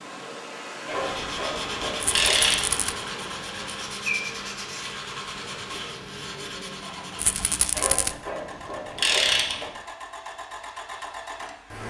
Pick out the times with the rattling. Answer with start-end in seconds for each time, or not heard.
2.0-3.0, 7.2-8.2.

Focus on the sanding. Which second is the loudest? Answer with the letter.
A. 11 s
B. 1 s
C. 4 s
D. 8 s
C.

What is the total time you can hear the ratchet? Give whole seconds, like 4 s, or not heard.
4 s.